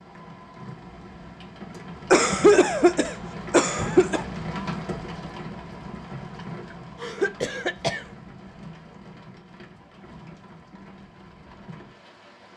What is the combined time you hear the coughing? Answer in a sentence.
You can hear the coughing for 3 seconds altogether.